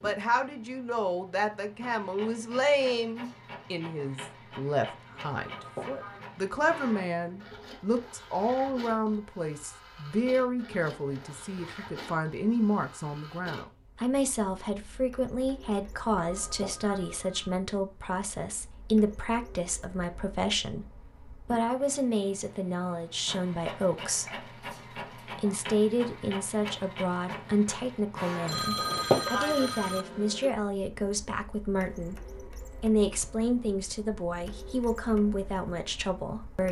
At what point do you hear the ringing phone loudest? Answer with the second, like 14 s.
29 s.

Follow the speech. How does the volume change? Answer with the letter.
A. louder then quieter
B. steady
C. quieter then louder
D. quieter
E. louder
B.